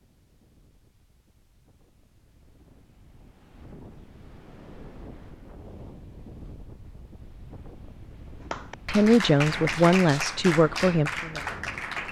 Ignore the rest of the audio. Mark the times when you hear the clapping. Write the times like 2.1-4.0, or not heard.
8.5-12.0.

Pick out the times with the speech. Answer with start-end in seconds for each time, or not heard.
8.8-11.6.